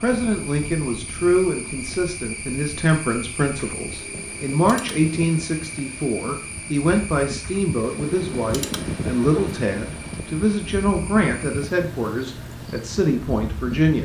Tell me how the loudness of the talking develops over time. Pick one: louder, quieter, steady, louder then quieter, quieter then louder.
steady.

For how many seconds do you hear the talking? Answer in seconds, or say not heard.
14 s.